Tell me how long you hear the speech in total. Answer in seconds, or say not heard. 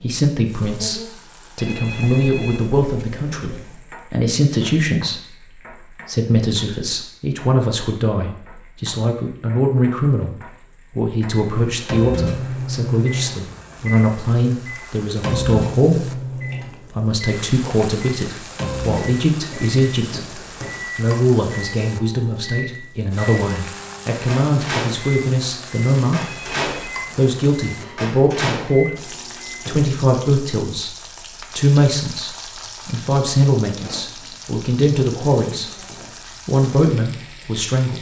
35 s.